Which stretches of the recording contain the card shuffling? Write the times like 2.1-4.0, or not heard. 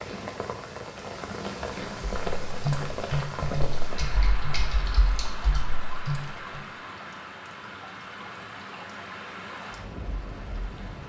not heard.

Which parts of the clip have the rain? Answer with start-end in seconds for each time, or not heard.
0.0-11.0.